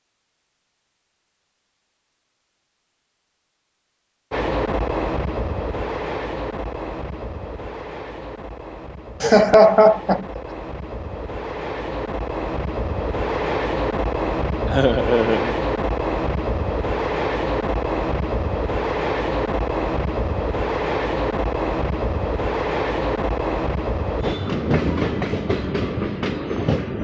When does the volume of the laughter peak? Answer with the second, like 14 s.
10 s.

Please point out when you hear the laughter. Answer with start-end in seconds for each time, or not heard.
9.2-10.4, 14.7-15.6.